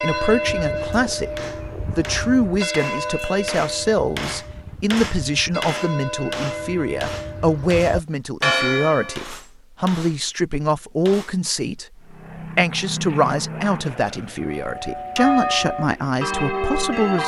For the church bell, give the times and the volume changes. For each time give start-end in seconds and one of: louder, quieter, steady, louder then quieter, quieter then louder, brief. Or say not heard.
0.0-9.3 quieter then louder
14.4-17.2 brief.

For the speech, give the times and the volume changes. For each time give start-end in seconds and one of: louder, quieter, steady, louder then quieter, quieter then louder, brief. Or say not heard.
0.0-1.3 brief
1.9-17.2 steady.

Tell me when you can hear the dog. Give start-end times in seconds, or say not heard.
not heard.